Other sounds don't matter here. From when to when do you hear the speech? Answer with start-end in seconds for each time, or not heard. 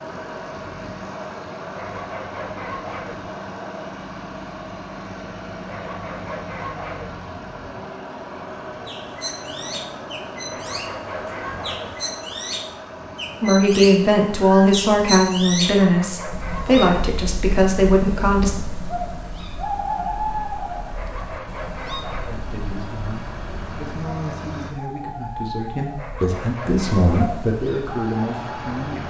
13.4-18.6, 22.2-29.0.